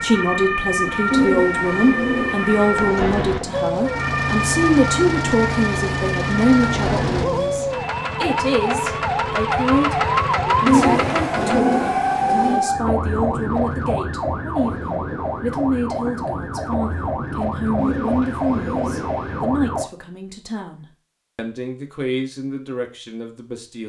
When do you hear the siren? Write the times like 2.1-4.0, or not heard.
0.0-19.9.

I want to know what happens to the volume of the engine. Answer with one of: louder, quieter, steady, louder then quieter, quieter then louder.
steady.